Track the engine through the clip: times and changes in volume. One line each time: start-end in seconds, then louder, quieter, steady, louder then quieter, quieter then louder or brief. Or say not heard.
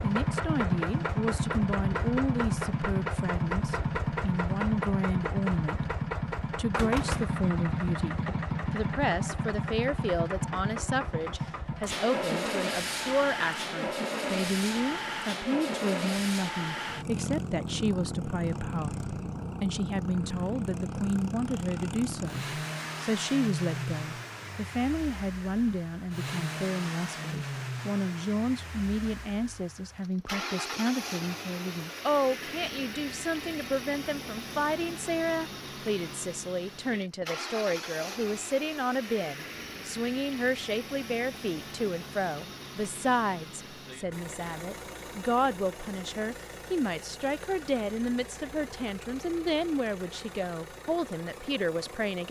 0.0-52.2 quieter.